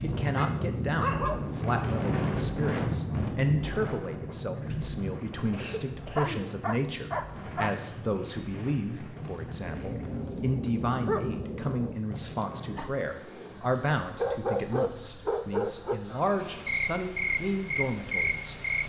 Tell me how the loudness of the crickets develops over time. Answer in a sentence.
The volume of the crickets goes up.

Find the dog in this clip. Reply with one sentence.
You can hear the dog from 0.3 to 1.6 s, from 6.2 to 7.8 s, from 9.7 to 11.9 s and from 14.2 to 16.0 s.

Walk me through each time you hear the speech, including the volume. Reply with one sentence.
The speech can be heard from 0.0 to 18.6 s, at a steady volume.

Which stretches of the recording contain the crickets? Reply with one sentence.
You can hear the crickets from 8.7 to 18.8 s.